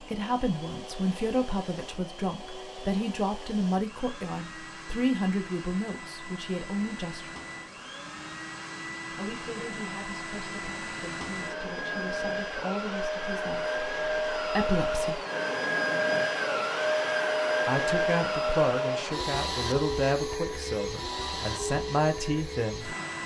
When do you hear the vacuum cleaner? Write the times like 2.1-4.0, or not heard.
0.0-23.2.